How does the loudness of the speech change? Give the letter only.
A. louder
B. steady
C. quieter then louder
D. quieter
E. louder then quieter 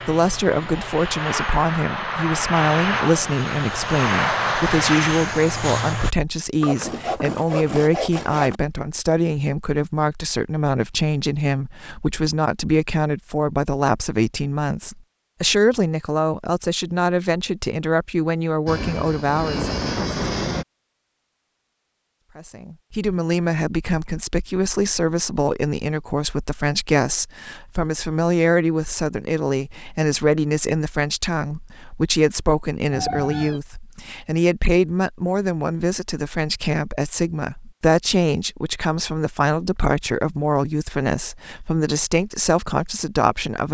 B.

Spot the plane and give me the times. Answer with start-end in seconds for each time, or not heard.
0.0-6.2, 18.6-20.6.